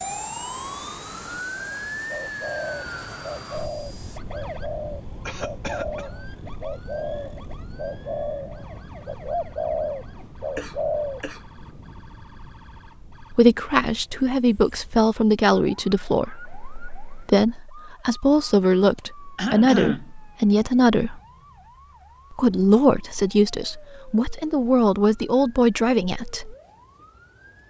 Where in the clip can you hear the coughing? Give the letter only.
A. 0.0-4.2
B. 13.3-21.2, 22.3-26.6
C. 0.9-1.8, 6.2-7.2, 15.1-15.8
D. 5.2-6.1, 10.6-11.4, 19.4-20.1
D.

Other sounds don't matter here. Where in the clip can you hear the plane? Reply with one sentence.
The plane can be heard from 0.0 to 4.2 s.